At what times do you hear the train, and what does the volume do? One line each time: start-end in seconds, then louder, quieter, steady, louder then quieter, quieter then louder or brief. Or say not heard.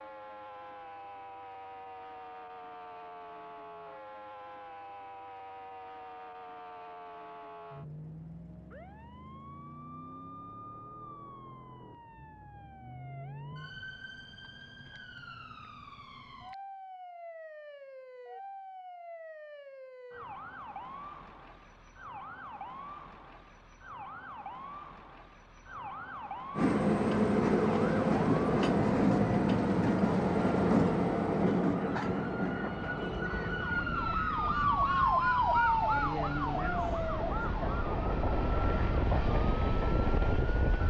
26.6-40.8 quieter then louder.